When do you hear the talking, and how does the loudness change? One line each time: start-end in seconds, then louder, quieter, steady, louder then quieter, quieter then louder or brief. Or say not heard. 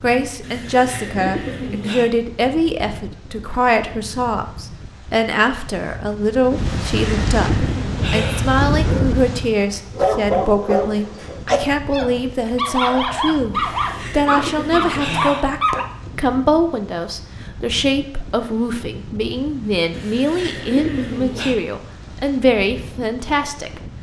0.0-23.9 steady.